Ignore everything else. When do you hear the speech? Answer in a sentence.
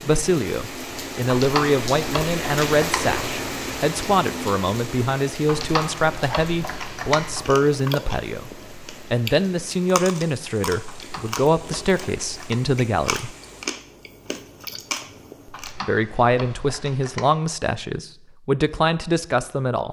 You can hear the speech from 0.0 to 13.3 s and from 15.6 to 19.8 s.